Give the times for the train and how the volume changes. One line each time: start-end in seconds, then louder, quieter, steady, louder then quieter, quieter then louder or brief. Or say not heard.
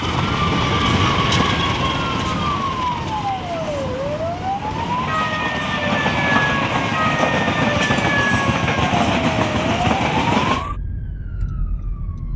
0.0-10.7 quieter then louder.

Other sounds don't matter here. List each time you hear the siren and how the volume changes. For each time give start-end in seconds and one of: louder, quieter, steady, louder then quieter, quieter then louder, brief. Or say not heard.
0.0-12.3 steady.